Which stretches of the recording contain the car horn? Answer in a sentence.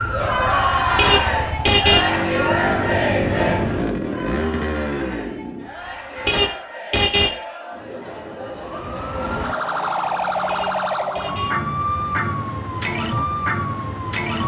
You can hear the car horn from 0.8 to 2.1 s, from 6.2 to 7.3 s and from 10.3 to 11.6 s.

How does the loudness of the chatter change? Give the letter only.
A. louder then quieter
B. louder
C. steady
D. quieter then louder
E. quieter
E.